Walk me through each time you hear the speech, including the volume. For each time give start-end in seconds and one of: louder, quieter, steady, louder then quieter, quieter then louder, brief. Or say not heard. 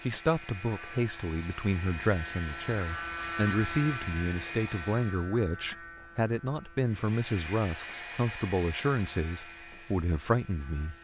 0.0-10.9 steady.